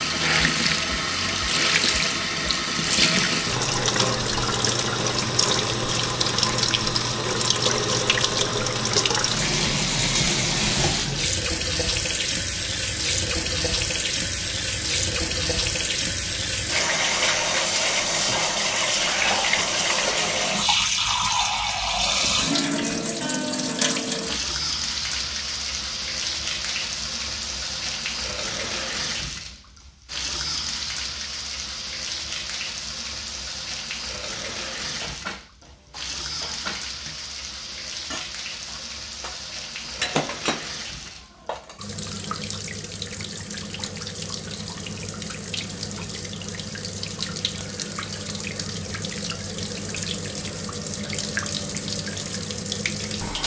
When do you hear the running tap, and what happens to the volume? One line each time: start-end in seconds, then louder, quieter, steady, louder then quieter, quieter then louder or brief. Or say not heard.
0.0-53.4 quieter.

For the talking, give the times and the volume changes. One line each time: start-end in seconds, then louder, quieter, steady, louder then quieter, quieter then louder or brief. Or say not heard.
not heard.